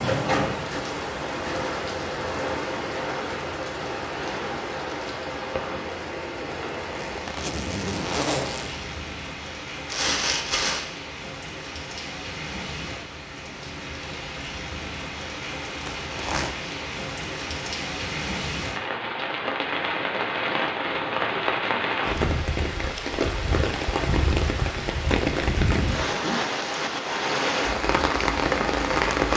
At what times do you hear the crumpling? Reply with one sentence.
The crumpling can be heard from 9.8 to 10.8 s.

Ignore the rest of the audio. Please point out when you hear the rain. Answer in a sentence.
The rain can be heard from 0.0 to 29.3 s.